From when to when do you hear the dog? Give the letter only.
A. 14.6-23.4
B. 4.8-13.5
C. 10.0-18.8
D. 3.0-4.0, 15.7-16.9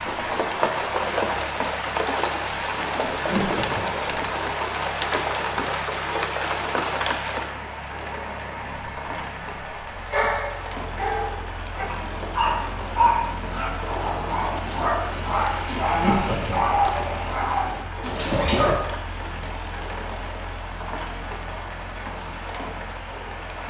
C.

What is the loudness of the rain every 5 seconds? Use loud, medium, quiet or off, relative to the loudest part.
loud, loud, medium, medium, medium.